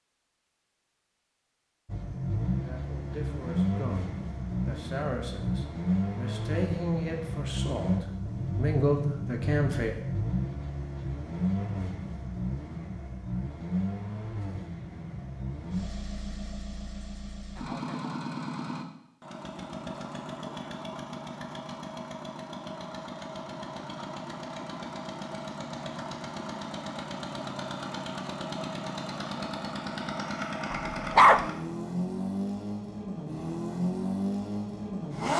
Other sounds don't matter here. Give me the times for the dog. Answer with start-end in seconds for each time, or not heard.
30.7-31.4.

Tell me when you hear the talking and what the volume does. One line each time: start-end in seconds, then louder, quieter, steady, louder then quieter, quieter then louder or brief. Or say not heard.
2.6-9.9 louder.